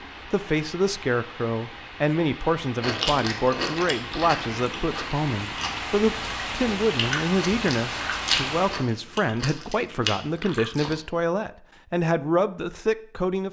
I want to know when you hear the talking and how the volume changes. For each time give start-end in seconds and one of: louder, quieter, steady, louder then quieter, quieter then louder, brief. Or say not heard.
0.3-13.4 steady.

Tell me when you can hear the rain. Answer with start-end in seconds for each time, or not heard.
0.0-8.9.